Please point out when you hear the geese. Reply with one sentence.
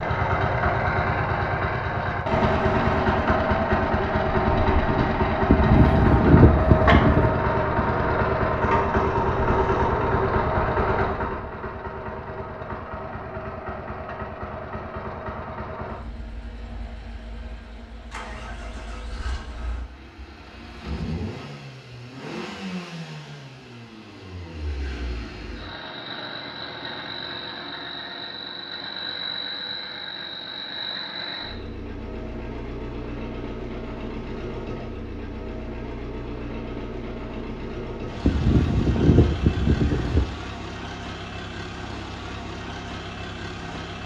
The geese can be heard from 5.5 to 7.3 s and from 38.2 to 40.2 s.